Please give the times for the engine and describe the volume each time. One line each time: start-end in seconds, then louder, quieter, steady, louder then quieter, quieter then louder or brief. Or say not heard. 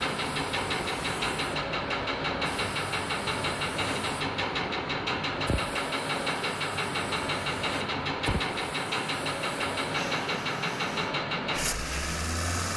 0.0-12.7 steady.